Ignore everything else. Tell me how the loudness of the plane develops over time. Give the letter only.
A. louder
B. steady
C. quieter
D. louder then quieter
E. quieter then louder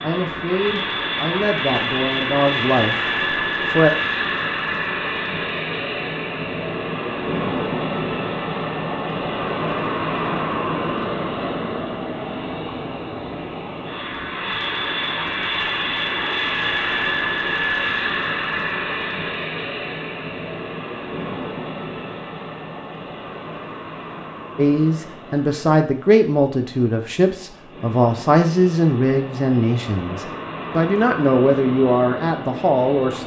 C.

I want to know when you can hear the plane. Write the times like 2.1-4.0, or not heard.
0.0-33.2.